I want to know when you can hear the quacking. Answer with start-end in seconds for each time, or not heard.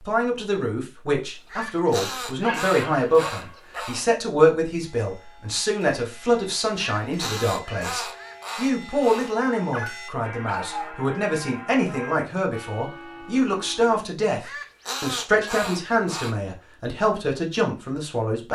1.2-4.0, 6.8-9.3, 14.4-16.4.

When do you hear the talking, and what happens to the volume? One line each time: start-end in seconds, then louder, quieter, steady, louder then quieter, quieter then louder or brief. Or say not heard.
0.0-18.5 steady.